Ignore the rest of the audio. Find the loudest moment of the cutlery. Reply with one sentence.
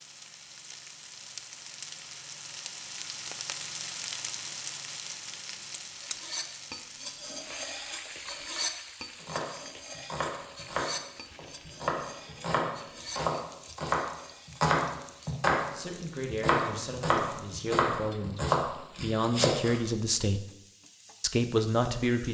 The volume of the cutlery peaks at 9 seconds.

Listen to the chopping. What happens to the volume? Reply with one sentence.
The loudness of the chopping goes up.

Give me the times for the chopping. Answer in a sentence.
You can hear the chopping from 9.2 to 19.8 s.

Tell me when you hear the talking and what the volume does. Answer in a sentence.
The talking can be heard from 15.7 to 20.4 s, getting quieter then louder; and briefly from 21.2 to 22.2 s.